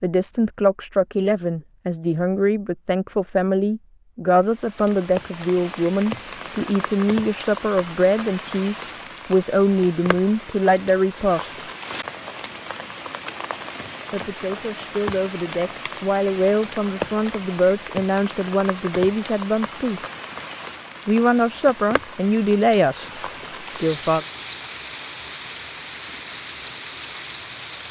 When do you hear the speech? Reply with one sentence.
You can hear the speech from 0.0 to 11.6 s, from 14.1 to 20.0 s, from 21.1 to 23.1 s and from 23.8 to 24.2 s.